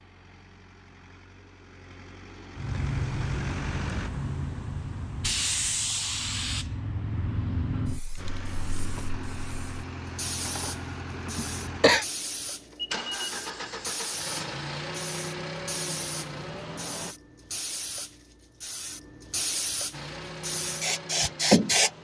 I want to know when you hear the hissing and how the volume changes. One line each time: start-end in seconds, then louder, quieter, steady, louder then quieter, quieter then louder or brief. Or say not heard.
2.5-21.9 quieter then louder.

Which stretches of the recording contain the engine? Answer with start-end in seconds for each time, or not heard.
0.0-4.1, 8.2-17.1, 19.9-22.0.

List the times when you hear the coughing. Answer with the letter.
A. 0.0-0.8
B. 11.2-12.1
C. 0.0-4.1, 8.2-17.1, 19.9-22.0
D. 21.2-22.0
B.